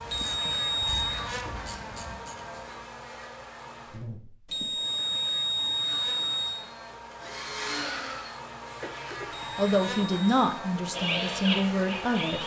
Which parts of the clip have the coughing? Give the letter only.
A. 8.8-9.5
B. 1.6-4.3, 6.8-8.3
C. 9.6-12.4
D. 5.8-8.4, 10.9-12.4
A.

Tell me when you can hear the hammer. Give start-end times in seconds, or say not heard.
not heard.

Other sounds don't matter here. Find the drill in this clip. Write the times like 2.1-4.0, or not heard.
5.8-8.4, 10.9-12.4.